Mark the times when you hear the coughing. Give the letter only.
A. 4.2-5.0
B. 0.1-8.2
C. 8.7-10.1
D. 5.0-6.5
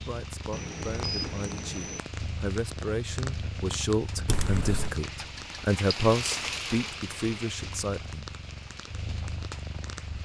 A.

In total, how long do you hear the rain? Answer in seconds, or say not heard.
10 s.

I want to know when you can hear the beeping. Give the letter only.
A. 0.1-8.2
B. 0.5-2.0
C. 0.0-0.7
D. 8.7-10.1
B.